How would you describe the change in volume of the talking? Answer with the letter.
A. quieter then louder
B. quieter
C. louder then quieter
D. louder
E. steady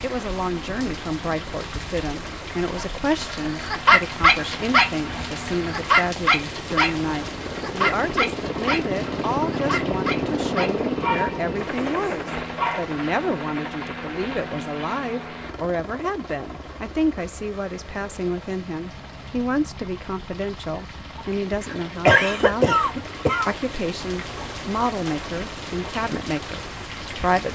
E.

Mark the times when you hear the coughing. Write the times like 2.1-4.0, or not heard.
22.1-23.6.